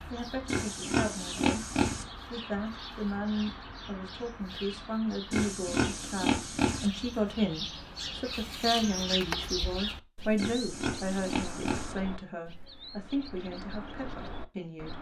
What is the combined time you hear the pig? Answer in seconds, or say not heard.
5 s.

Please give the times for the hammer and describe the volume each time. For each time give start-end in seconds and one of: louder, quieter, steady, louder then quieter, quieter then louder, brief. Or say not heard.
not heard.